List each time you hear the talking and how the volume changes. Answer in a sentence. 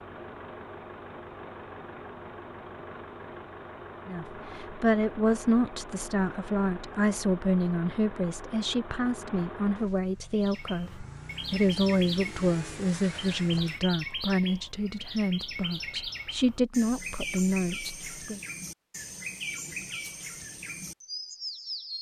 You can hear the talking from 4.0 to 18.4 s, at a steady volume.